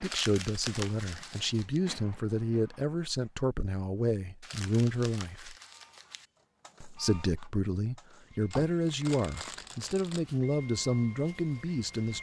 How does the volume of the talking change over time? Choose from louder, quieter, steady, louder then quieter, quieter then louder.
steady.